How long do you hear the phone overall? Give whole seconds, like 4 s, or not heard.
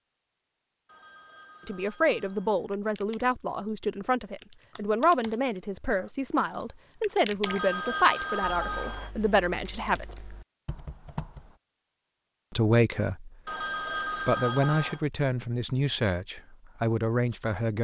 5 s.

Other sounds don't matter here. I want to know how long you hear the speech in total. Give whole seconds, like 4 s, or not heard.
13 s.